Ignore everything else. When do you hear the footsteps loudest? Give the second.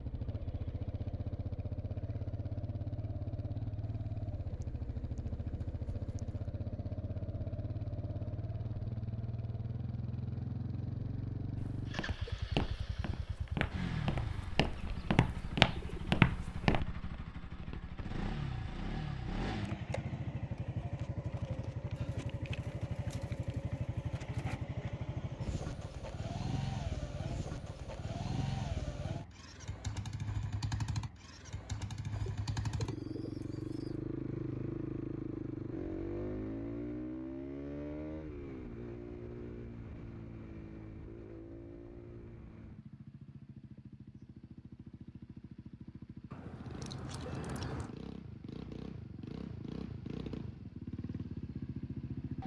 16 s.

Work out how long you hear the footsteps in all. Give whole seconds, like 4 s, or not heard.
5 s.